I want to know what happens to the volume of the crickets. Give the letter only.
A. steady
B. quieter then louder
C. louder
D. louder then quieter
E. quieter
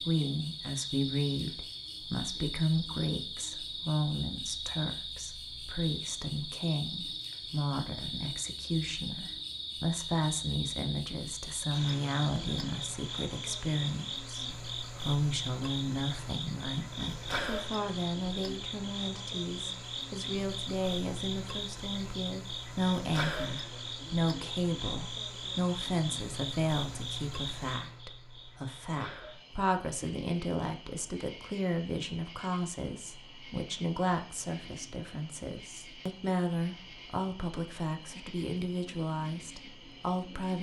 E.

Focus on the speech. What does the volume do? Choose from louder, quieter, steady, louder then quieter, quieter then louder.
steady.